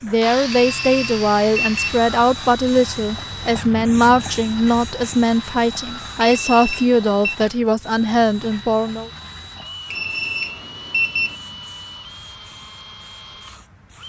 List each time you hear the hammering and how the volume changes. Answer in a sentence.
You can't hear the hammering here.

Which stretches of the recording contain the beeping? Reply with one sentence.
The beeping can be heard from 0.5 to 2.0 s, from 6.2 to 7.3 s and from 9.9 to 11.3 s.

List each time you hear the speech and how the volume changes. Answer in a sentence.
The speech can be heard from 0.0 to 9.1 s, at a steady volume.